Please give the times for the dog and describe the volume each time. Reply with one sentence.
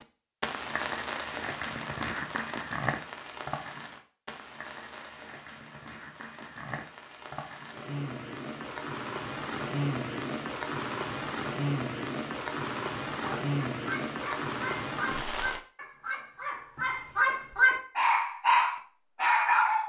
You can hear the dog from 13.2 to 19.8 s, getting louder.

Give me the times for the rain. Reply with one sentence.
The rain can be heard from 0.0 to 15.6 s.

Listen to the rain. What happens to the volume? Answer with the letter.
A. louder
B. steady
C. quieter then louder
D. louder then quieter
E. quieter
C.